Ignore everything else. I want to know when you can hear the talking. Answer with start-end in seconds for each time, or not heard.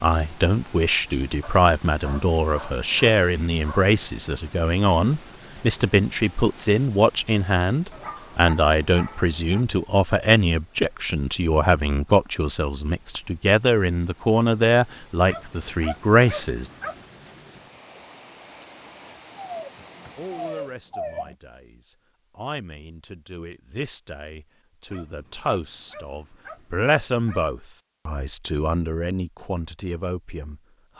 0.0-16.7, 20.1-30.9.